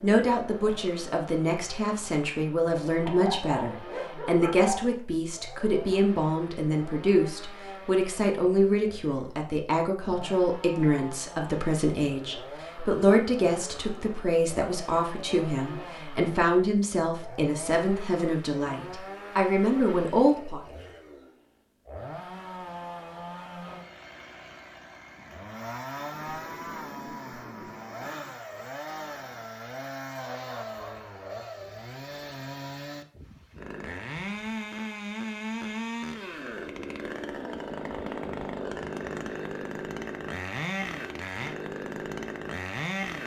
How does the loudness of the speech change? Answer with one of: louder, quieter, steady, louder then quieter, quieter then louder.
steady.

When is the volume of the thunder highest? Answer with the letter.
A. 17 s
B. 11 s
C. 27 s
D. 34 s
C.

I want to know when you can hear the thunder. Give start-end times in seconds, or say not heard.
25.1-28.4.